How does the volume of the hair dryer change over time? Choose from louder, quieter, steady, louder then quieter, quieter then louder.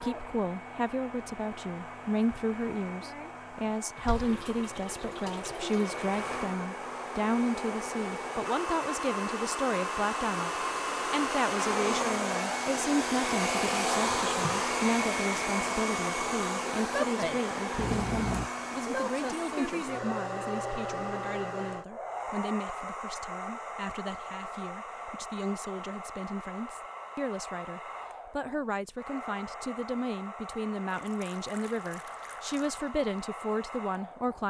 louder then quieter.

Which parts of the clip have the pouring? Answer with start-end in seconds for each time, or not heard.
4.0-6.1, 17.8-18.5, 30.9-33.0.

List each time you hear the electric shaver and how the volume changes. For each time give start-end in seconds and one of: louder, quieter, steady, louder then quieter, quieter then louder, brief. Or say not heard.
not heard.